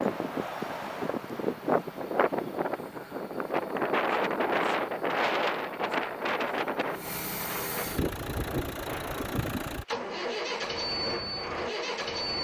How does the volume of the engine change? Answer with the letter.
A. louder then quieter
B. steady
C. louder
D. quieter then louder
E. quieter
C.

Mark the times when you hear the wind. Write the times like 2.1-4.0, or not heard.
0.0-9.4.